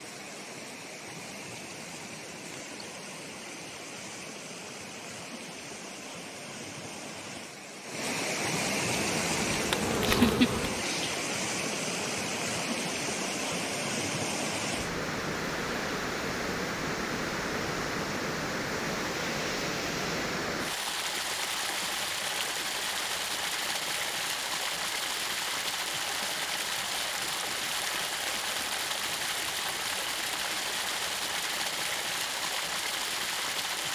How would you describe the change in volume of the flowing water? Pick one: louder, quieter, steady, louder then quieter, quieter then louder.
louder.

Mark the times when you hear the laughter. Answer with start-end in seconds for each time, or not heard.
10.1-11.2.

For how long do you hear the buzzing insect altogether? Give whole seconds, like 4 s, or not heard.
2 s.